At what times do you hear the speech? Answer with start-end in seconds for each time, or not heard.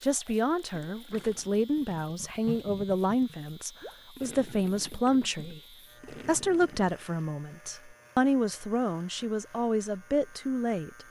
0.0-5.6, 6.2-11.0.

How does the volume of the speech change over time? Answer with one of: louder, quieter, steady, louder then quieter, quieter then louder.
steady.